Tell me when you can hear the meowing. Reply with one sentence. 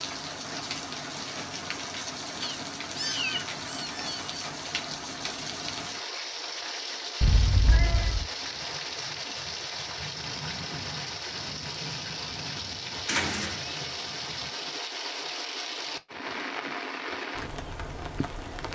The meowing can be heard from 2.4 to 4.2 s, from 7.2 to 8.3 s and from 13.1 to 13.8 s.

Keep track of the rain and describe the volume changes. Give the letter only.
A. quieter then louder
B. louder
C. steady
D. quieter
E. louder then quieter
C.